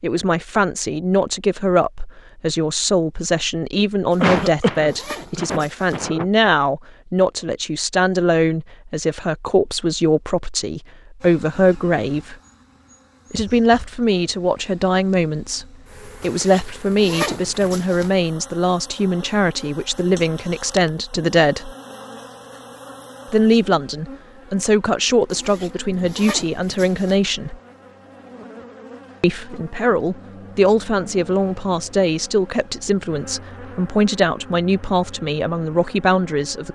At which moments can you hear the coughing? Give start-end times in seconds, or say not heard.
4.2-6.2.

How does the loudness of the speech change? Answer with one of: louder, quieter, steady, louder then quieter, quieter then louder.
steady.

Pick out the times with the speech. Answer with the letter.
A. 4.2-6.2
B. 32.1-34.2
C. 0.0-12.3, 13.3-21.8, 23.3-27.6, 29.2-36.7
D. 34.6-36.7
C.